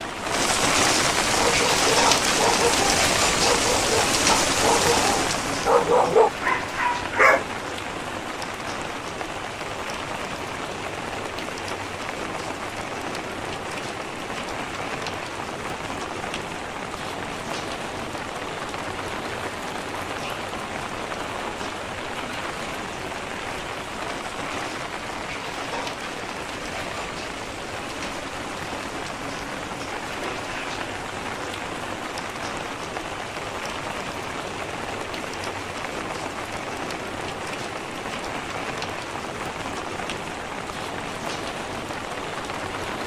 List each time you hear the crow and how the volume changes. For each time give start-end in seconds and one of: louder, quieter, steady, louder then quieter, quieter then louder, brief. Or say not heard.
not heard.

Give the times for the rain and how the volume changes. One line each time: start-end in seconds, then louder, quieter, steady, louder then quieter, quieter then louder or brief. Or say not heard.
0.0-43.0 quieter.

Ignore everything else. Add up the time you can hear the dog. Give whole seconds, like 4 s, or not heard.
6 s.